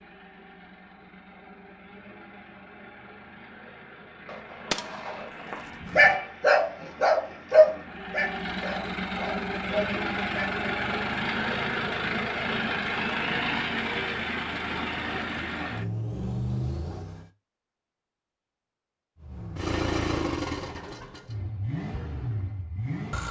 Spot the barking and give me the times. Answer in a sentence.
You can hear the barking from 5.5 to 10.5 s.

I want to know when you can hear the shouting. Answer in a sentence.
The shouting can't be heard in this clip.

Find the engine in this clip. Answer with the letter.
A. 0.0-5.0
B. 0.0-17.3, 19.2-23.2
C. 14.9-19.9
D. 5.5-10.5
B.